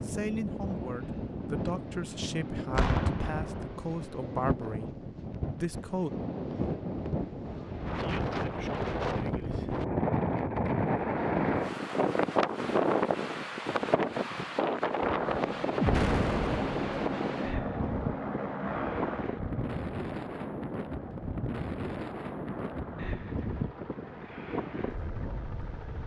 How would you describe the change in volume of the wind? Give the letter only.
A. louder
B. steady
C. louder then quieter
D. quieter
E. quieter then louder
C.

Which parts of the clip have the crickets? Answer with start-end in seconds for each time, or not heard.
not heard.